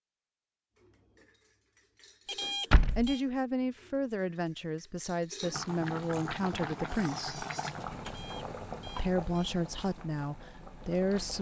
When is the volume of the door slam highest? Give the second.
3 s.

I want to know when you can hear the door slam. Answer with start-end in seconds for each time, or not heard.
2.7-3.1, 7.8-8.3.